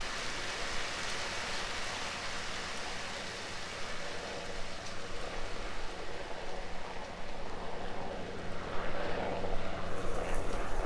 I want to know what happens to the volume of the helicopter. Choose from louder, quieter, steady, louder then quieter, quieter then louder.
louder.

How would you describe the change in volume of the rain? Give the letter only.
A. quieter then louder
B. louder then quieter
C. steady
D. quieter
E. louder
D.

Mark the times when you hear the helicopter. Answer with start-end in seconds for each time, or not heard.
0.0-10.8.